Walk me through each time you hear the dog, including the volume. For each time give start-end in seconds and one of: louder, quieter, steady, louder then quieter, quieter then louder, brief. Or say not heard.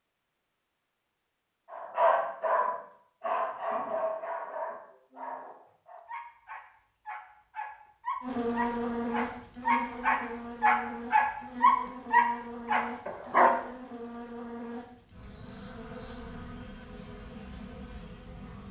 1.7-13.6 quieter then louder.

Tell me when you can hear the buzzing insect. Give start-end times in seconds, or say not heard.
8.2-18.6.